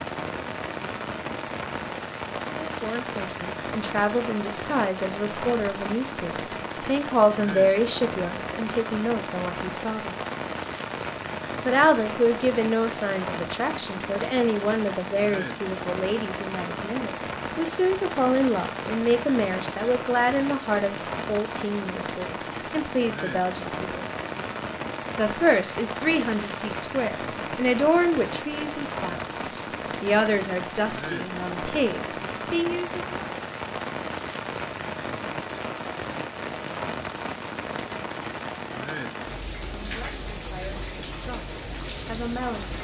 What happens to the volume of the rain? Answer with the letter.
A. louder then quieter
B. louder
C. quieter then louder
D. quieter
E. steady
E.